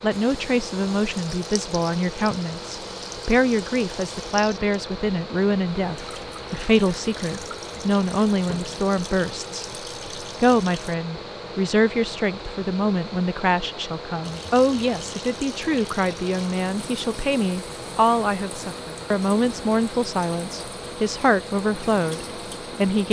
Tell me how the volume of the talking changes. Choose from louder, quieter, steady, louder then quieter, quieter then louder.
steady.